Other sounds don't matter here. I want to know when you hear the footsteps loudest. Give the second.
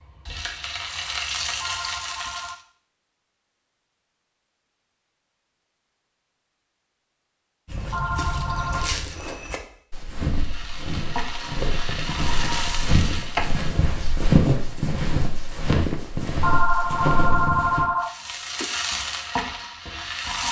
14 s.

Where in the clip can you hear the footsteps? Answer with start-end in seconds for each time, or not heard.
7.7-17.9.